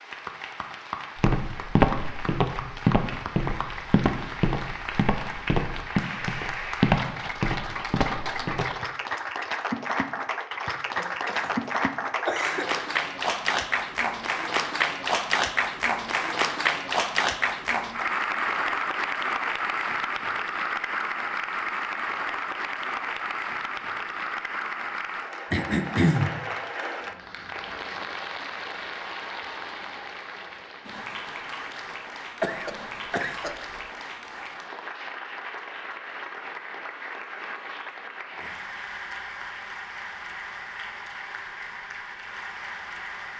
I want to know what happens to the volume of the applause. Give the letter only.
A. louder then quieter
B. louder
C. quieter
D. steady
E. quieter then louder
A.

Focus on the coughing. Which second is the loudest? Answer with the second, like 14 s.
26 s.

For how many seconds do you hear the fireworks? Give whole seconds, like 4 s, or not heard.
not heard.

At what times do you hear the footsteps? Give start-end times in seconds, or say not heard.
1.1-8.8.